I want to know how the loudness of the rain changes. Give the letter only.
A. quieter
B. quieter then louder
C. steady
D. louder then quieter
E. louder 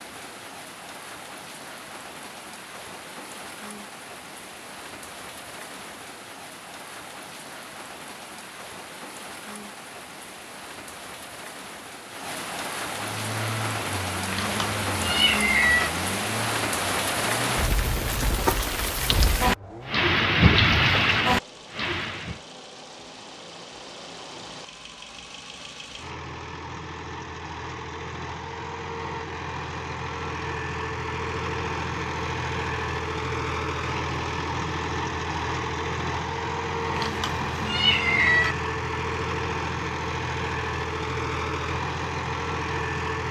E.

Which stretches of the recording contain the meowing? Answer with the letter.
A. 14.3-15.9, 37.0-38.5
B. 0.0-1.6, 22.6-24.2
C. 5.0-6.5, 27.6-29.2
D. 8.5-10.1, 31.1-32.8
A.